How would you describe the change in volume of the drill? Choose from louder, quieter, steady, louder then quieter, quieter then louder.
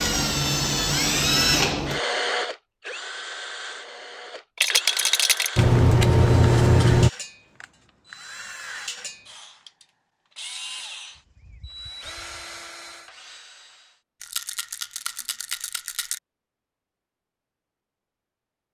quieter.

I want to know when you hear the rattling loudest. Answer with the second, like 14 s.
5 s.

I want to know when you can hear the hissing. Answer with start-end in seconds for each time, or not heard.
5.5-7.1.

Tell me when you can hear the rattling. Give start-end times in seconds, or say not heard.
4.5-5.6, 14.2-16.2.